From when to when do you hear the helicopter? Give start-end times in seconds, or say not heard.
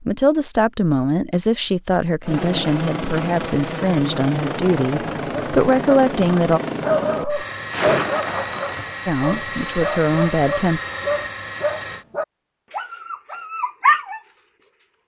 2.2-12.1.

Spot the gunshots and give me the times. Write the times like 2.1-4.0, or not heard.
7.7-8.9.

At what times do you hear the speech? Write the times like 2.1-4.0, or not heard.
0.0-6.6, 9.1-10.8.